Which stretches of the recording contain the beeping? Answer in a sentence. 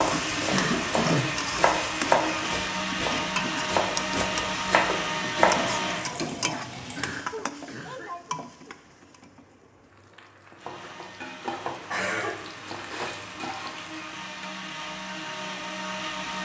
You can't hear the beeping here.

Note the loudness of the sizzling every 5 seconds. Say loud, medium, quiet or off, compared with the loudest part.
loud, loud, medium, off.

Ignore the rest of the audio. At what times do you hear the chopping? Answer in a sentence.
The chopping can be heard from 0.0 to 5.6 s.